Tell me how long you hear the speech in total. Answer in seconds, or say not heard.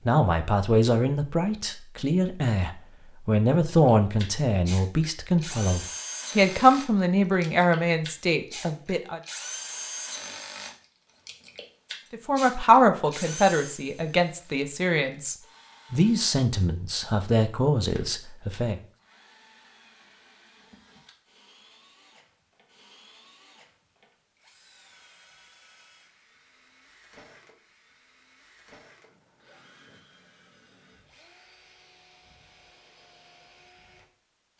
16 s.